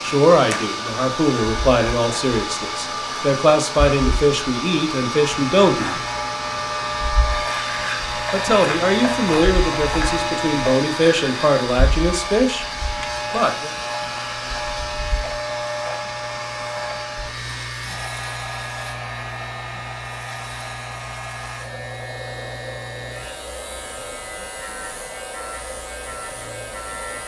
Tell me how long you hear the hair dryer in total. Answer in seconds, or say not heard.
27 s.